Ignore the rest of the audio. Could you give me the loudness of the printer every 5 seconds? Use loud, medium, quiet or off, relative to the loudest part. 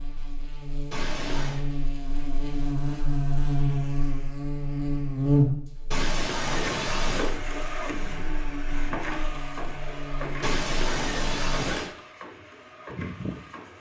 off, loud, loud.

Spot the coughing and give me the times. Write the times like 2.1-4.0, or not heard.
0.9-1.6, 5.9-7.3, 10.4-11.9.